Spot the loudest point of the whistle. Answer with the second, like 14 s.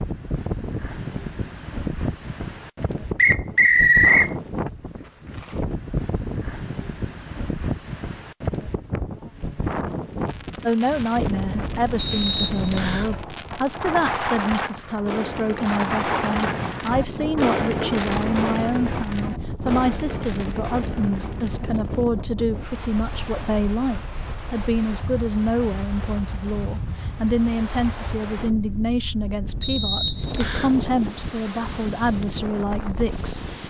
4 s.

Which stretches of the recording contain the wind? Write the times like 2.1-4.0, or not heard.
0.0-33.6.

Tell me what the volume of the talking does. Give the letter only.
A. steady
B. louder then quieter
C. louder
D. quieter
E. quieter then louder
A.